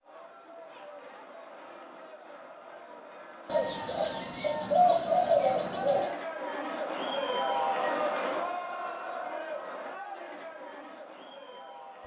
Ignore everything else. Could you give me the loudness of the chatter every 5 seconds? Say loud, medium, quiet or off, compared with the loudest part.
quiet, loud, medium.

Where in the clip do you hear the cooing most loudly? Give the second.
5 s.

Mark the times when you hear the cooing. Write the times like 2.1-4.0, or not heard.
3.5-6.2.